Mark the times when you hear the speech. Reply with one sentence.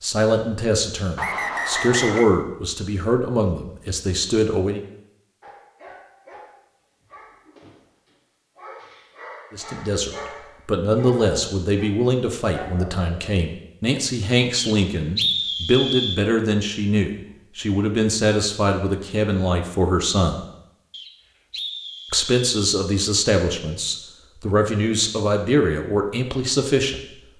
The speech can be heard from 0.0 to 4.8 s, from 9.5 to 20.4 s and from 22.1 to 27.0 s.